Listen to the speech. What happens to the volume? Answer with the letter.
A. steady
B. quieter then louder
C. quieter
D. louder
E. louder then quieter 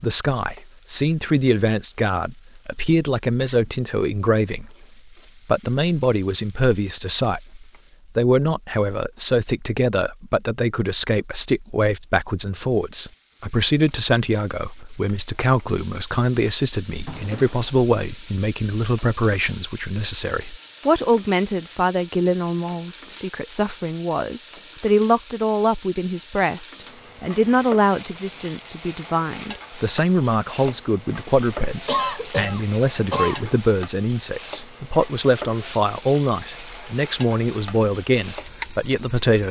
A.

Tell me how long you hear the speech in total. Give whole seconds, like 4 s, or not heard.
39 s.